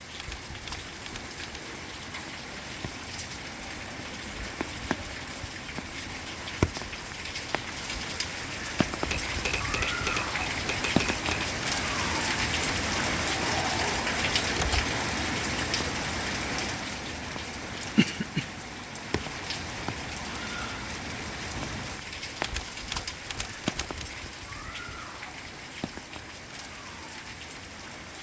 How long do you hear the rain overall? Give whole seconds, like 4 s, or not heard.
28 s.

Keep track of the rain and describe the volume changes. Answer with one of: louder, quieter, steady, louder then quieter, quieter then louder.
louder then quieter.